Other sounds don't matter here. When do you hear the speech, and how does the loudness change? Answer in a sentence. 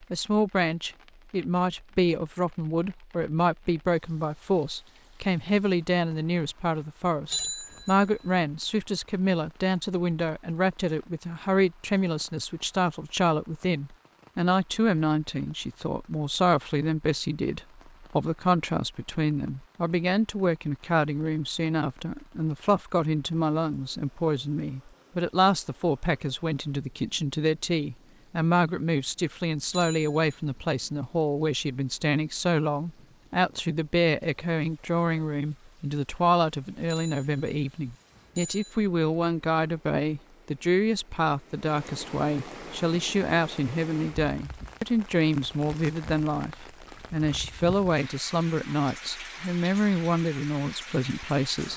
The speech can be heard from 0.0 to 51.7 s, at a steady volume.